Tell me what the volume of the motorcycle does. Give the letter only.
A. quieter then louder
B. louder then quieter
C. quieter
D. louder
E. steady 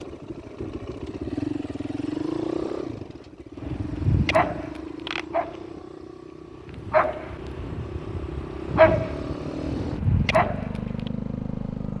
A.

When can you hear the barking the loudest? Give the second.
9 s.